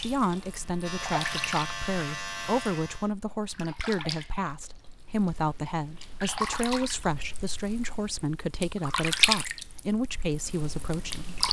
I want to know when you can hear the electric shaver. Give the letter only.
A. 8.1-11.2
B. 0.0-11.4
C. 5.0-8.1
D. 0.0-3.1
D.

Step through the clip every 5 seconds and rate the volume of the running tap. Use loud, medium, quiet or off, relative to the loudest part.
medium, loud, loud.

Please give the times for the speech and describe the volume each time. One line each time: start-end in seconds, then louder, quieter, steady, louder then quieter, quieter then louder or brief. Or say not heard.
0.0-11.4 steady.